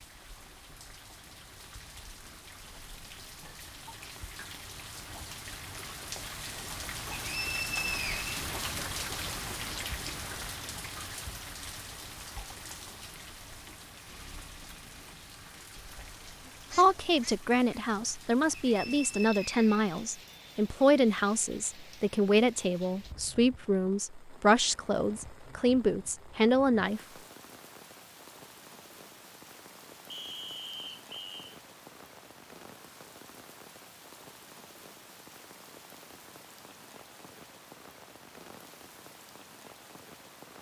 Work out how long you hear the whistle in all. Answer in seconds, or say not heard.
4 s.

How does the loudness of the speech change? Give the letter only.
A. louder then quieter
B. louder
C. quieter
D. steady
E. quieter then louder
D.